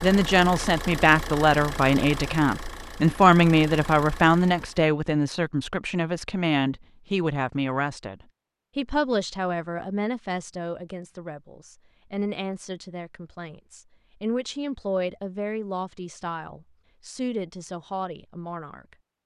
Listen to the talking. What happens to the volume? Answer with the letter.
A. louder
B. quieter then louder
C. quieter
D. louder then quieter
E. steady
C.